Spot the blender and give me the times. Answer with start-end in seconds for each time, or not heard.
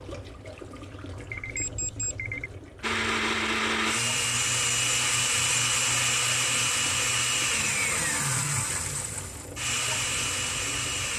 2.8-11.1.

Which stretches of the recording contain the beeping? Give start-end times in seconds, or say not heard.
1.3-2.5.